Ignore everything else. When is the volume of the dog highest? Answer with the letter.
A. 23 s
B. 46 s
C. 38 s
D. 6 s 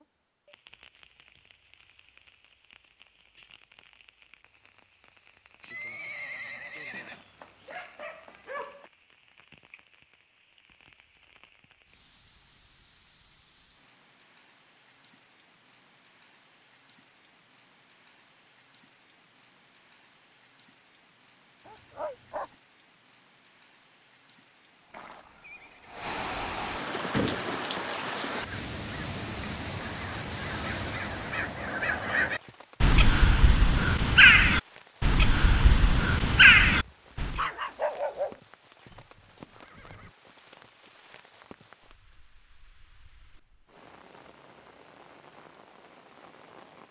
C.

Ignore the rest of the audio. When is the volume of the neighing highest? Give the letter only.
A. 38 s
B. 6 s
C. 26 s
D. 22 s
B.